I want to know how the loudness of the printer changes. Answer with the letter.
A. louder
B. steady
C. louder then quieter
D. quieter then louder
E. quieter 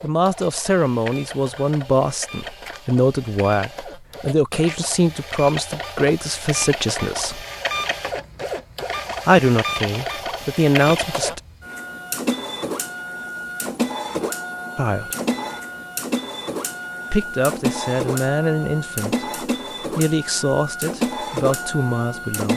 A.